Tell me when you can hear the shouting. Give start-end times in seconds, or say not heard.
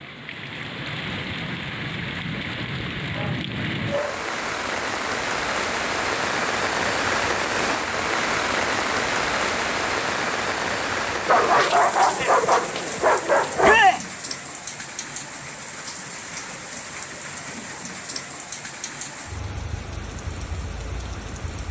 13.6-14.1.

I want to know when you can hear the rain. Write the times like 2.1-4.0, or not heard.
0.0-21.6.